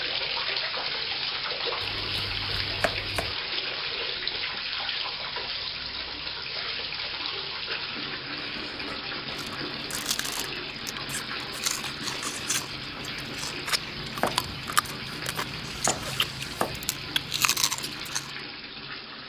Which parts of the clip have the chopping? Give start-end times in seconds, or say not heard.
1.8-3.4, 14.2-16.9.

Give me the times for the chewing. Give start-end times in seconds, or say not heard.
8.4-18.3.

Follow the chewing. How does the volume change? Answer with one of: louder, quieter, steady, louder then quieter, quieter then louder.
louder.